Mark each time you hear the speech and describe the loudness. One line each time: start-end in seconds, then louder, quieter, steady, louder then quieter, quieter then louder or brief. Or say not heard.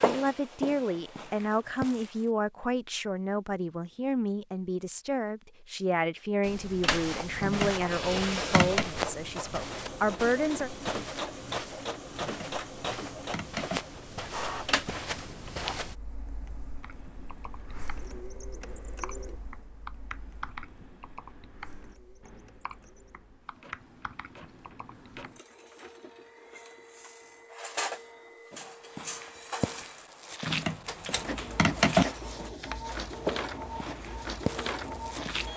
0.0-10.7 steady.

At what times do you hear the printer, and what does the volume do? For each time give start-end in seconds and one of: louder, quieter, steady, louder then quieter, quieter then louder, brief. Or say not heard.
0.0-1.9 brief
6.8-35.5 quieter then louder.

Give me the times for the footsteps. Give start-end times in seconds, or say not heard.
0.0-2.3, 6.4-15.9, 28.5-35.5.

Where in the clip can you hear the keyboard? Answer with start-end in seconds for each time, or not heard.
16.8-25.4.